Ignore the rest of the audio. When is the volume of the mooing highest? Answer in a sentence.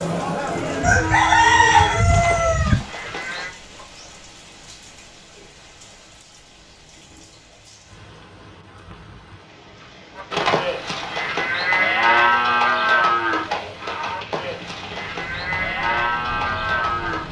The volume of the mooing peaks at 12 seconds.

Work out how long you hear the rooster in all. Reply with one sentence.
You can hear the rooster for 2 seconds altogether.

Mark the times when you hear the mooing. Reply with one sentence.
You can hear the mooing from 0.0 to 3.5 s and from 10.2 to 17.2 s.